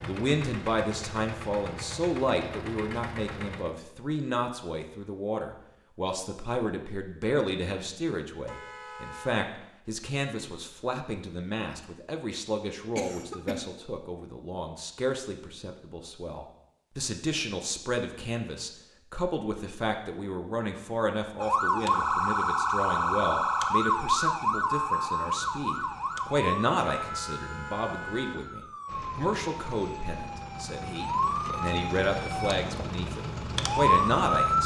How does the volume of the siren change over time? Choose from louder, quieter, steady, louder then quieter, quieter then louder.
quieter then louder.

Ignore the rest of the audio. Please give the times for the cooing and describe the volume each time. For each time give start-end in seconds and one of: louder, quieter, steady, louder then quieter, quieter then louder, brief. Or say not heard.
not heard.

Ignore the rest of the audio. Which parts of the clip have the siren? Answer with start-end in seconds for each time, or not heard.
21.4-34.6.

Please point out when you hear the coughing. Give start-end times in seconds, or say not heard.
12.9-13.7.